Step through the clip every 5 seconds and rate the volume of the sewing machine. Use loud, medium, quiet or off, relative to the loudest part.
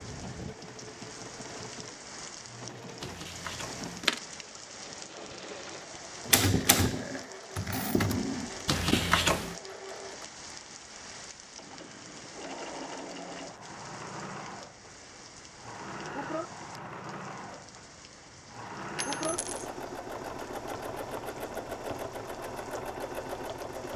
medium, medium, medium, loud, loud.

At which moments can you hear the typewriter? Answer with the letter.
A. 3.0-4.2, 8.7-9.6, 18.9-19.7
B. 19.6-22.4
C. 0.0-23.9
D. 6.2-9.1
D.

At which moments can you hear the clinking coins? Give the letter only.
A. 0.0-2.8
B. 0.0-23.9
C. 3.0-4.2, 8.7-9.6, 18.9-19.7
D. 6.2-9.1
C.